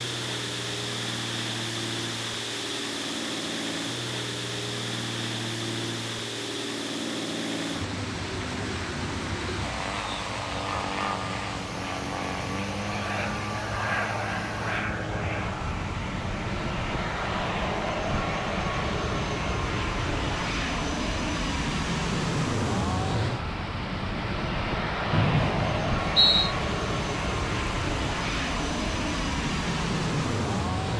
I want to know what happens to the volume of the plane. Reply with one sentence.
The volume of the plane goes up.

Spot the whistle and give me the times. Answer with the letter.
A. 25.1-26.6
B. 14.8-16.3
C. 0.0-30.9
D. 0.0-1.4
A.